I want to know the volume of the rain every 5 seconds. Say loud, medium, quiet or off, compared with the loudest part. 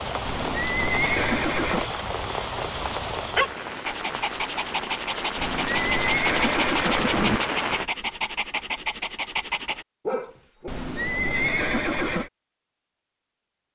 loud, loud, off.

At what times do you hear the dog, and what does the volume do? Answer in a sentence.
The dog can be heard from 3.1 to 10.7 s, at a steady volume.